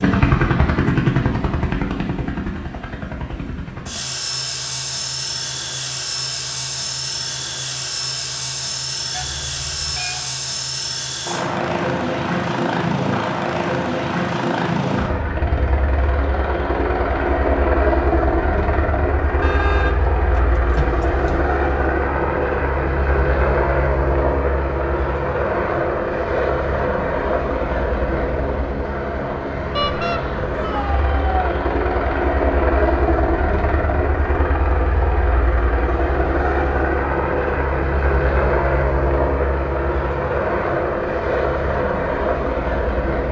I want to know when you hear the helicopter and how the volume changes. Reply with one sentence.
You can hear the helicopter from 0.0 to 43.2 s, at a steady volume.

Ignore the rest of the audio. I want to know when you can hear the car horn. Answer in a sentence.
The car horn can be heard from 9.1 to 10.3 s, from 19.4 to 21.4 s and from 29.8 to 30.2 s.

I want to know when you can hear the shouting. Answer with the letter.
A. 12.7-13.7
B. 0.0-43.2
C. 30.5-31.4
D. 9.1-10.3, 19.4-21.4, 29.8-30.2
C.